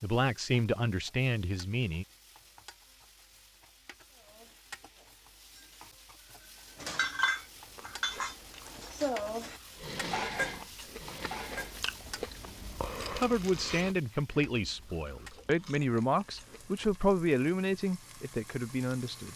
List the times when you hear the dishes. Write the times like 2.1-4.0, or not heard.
4.1-11.8.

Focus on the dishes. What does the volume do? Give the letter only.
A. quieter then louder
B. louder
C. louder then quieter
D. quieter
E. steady
B.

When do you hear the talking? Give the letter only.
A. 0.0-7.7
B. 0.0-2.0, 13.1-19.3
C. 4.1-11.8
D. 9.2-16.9
B.